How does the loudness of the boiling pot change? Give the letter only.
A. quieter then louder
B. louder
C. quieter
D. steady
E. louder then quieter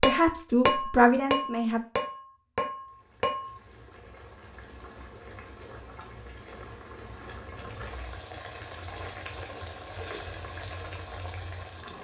B.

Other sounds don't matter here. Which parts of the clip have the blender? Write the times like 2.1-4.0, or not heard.
not heard.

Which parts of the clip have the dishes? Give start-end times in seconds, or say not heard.
0.0-3.5.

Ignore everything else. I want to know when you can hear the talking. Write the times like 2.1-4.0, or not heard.
0.0-1.8.